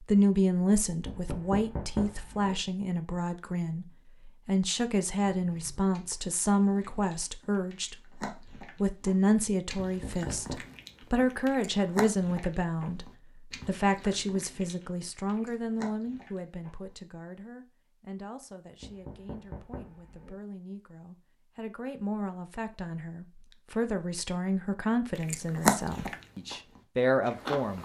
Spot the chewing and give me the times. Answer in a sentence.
The chewing can be heard from 5.2 to 16.9 s and from 25.1 to 27.8 s.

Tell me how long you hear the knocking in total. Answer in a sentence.
The knocking can be heard for 4 seconds in total.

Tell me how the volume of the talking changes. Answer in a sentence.
The volume of the talking goes down, then up.